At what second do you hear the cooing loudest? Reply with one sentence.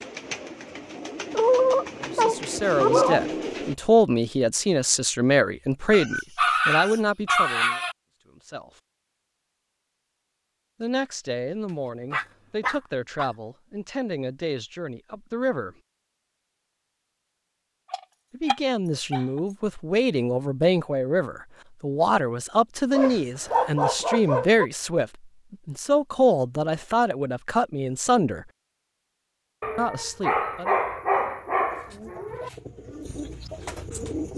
The volume of the cooing peaks at 3 seconds.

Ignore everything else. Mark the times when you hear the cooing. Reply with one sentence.
You can hear the cooing from 0.0 to 3.8 s and from 31.7 to 34.3 s.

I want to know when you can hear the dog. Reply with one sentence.
The dog can be heard from 1.3 to 3.2 s, from 5.9 to 8.0 s, from 12.1 to 13.2 s, from 17.9 to 19.4 s, from 22.9 to 24.6 s and from 29.6 to 32.5 s.